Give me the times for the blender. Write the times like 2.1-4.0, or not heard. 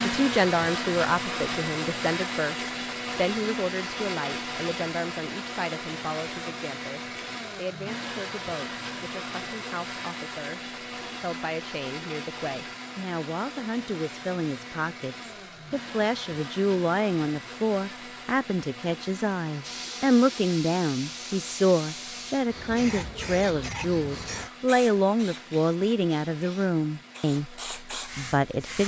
0.0-28.8.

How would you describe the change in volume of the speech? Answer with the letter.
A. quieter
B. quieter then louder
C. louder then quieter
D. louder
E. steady
B.